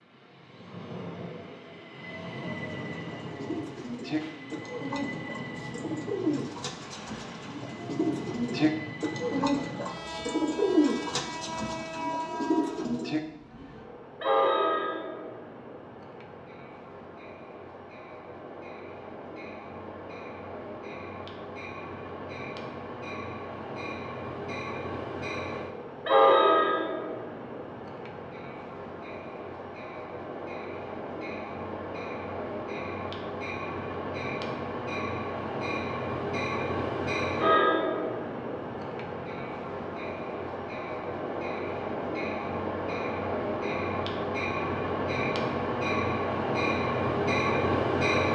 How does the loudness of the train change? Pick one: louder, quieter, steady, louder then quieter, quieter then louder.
louder.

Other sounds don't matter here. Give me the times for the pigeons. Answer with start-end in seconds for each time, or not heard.
2.6-13.2.